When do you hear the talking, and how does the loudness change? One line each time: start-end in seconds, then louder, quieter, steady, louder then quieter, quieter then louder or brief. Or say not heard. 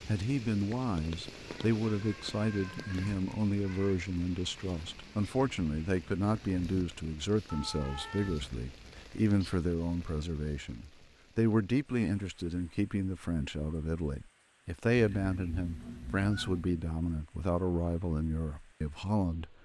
0.1-19.5 steady.